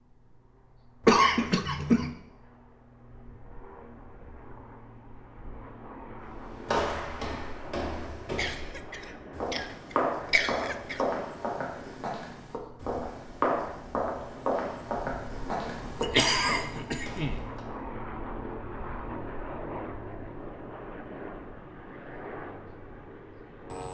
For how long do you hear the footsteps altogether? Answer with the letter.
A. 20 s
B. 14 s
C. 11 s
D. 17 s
C.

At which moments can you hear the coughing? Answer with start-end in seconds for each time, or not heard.
1.1-2.1, 8.3-11.0, 16.0-17.4.